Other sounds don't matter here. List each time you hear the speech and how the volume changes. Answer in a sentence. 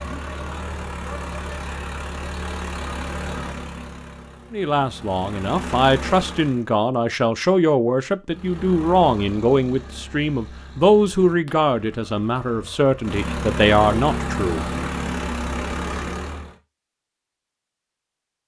You can hear the speech from 4.5 to 14.7 s, at a steady volume.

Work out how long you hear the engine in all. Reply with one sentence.
You can hear the engine for 15 seconds altogether.